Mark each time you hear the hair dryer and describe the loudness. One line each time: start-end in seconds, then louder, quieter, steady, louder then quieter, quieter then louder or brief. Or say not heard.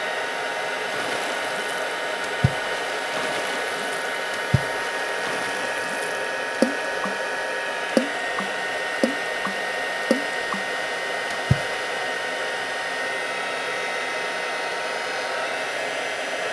0.0-16.4 steady.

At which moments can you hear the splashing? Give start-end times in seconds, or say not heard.
0.8-7.2, 7.8-10.7, 11.3-11.8.